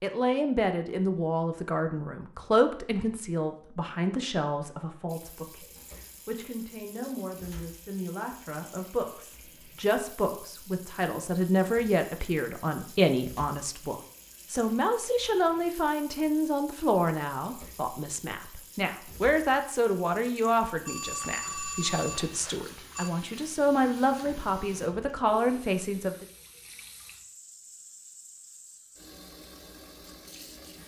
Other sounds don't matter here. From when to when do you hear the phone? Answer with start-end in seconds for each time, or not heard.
20.9-23.1.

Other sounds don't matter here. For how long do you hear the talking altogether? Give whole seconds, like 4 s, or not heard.
26 s.